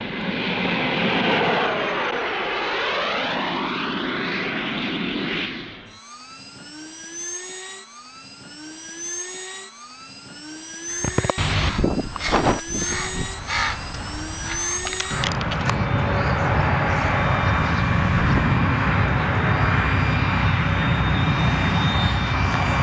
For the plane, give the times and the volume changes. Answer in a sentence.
The plane can be heard from 0.0 to 22.7 s, getting quieter then louder.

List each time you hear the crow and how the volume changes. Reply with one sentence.
The crow can be heard from 10.9 to 18.4 s, getting quieter.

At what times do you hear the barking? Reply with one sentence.
The barking can't be heard in this clip.